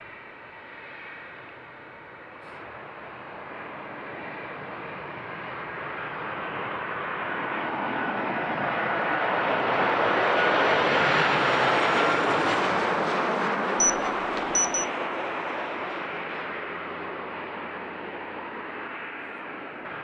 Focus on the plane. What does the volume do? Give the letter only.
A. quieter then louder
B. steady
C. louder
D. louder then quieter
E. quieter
D.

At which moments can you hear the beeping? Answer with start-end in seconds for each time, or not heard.
13.8-14.8.